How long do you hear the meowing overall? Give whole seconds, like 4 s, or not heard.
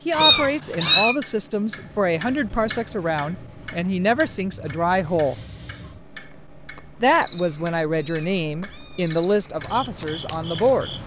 3 s.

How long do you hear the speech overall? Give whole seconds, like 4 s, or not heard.
9 s.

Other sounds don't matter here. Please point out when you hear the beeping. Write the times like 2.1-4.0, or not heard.
not heard.